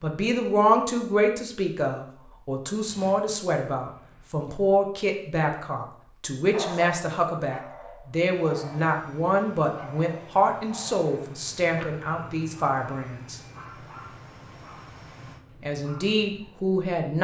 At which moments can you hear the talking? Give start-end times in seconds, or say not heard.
0.0-13.4, 15.6-17.1.